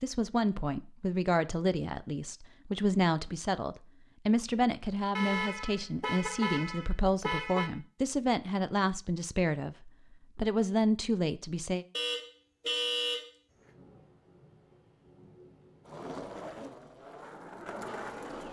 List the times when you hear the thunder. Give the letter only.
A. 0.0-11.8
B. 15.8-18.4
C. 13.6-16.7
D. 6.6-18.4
C.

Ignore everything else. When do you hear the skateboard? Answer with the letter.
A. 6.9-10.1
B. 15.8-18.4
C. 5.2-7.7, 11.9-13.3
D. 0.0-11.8
B.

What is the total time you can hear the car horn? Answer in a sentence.
You can hear the car horn for 4 seconds altogether.